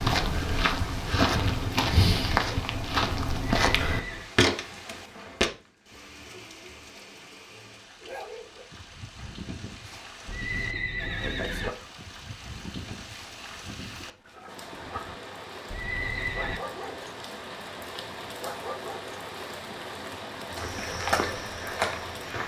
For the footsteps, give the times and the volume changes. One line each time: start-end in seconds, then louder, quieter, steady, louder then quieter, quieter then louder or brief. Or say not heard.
0.0-5.5 steady
20.6-22.4 brief.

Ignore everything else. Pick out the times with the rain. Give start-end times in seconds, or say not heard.
0.1-22.4.